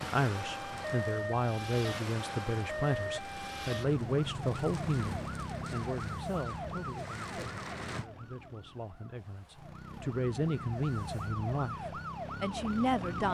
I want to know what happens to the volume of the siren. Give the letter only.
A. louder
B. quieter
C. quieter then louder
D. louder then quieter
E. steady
C.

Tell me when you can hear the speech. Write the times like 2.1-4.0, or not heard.
0.0-13.2.